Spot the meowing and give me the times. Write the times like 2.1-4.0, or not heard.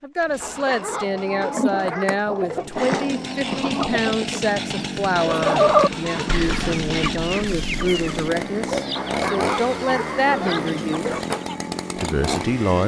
not heard.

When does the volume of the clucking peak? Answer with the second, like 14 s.
6 s.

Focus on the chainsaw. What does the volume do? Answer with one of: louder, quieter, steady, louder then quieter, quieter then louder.
louder.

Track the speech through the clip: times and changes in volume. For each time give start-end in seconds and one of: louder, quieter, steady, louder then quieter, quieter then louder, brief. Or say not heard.
0.0-11.1 steady
11.9-12.8 brief.